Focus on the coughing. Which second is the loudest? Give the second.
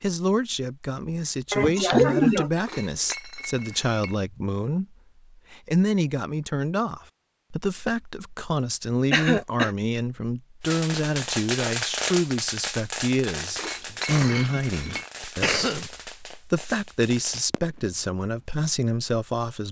2 s.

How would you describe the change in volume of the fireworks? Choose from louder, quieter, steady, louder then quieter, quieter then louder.
quieter.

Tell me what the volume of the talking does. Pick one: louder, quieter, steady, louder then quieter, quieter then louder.
steady.